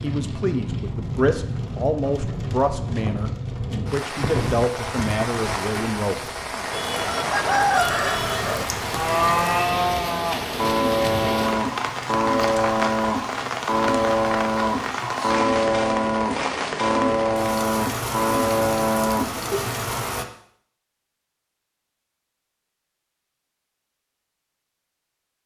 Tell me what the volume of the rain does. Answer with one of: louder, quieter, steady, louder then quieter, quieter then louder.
steady.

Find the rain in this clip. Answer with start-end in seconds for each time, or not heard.
0.0-20.2.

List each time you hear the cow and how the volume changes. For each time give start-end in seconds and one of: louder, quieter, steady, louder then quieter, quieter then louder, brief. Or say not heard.
8.8-19.9 steady.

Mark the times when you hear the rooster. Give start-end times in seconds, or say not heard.
6.7-8.7.